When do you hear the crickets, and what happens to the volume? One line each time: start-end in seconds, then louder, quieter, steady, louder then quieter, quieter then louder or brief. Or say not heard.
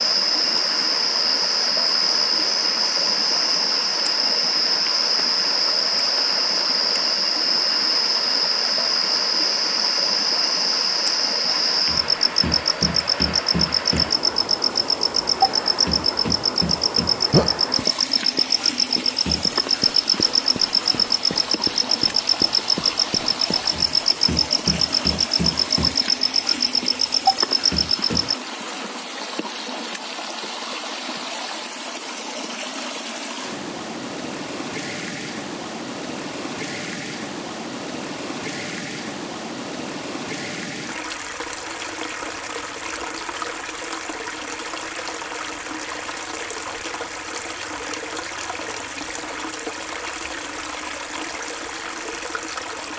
0.0-28.4 steady.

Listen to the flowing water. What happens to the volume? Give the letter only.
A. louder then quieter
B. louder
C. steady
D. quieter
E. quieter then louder
C.